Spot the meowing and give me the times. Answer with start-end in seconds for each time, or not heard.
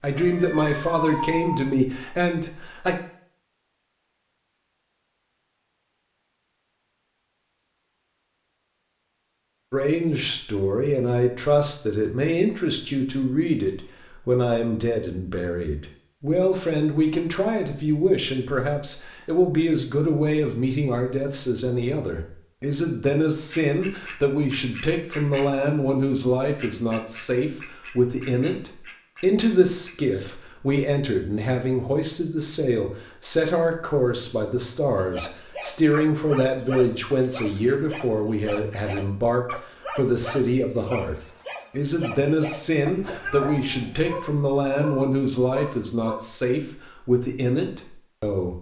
0.1-1.6, 43.0-44.1.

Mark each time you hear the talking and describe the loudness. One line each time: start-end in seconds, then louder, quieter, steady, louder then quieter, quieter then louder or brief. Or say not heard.
0.0-3.0 brief
9.7-48.5 steady.